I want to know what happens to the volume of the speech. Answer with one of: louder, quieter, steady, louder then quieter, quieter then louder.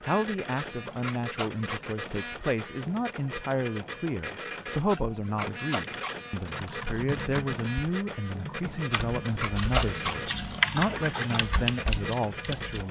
steady.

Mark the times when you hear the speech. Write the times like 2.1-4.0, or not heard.
0.0-12.8.